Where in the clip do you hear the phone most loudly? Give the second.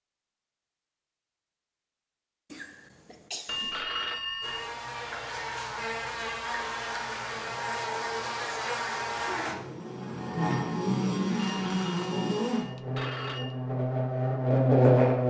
4 s.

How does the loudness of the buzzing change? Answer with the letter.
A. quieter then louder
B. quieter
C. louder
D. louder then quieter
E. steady
C.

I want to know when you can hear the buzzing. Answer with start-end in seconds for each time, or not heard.
4.4-15.2.